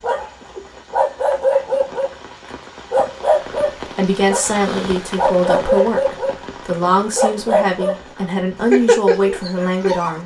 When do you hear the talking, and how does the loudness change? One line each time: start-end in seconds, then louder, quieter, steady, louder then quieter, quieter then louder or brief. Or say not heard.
4.0-10.2 steady.